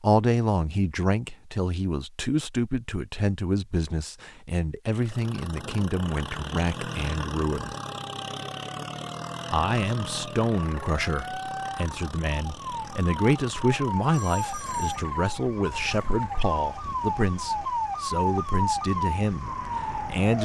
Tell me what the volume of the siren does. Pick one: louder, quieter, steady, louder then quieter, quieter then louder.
louder.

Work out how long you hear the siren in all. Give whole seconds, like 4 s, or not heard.
13 s.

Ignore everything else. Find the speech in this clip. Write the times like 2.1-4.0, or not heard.
0.0-7.8, 9.5-20.3.